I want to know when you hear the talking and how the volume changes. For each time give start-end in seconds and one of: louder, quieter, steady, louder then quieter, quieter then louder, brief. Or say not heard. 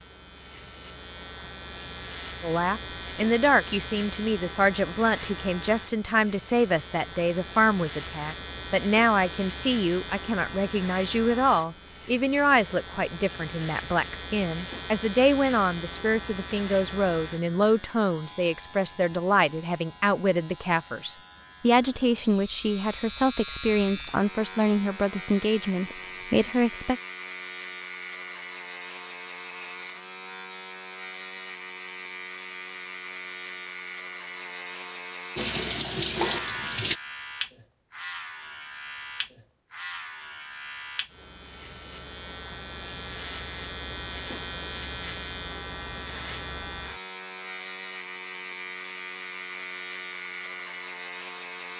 2.4-27.0 steady.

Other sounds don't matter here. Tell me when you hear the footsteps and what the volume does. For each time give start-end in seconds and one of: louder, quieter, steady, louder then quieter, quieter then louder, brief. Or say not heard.
not heard.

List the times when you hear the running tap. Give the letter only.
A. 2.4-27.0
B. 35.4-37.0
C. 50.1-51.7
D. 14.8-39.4
B.